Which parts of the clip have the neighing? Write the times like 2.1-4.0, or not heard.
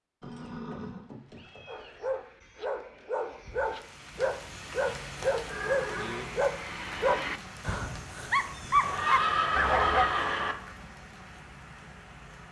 0.2-2.0, 5.5-6.4, 8.8-10.6.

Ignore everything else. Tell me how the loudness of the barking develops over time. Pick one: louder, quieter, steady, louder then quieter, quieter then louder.
louder.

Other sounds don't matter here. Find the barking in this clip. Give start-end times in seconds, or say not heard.
1.6-10.1.